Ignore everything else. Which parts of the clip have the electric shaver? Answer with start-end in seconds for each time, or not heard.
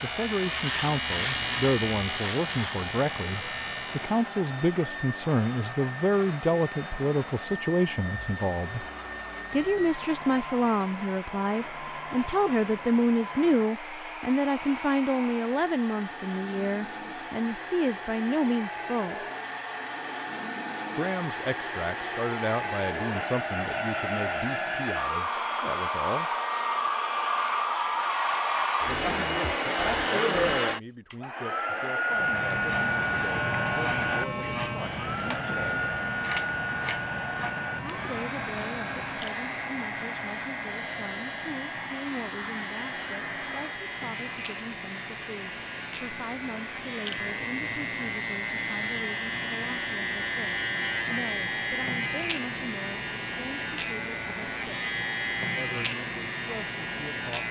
0.0-4.3, 32.1-57.4.